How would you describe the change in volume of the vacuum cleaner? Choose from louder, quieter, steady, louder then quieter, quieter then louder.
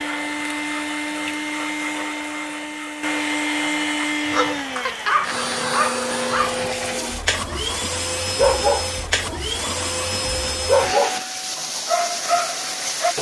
steady.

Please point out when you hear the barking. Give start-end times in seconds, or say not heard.
4.2-13.1.